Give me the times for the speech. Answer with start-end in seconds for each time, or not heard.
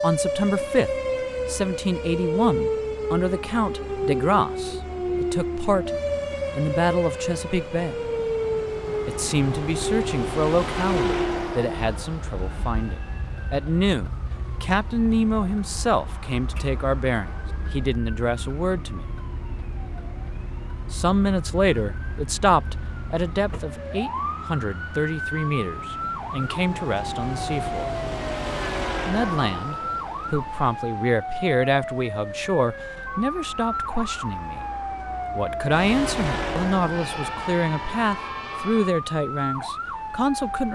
0.0-5.9, 6.5-8.0, 9.1-19.1, 20.9-27.9, 29.1-34.6, 35.4-40.7.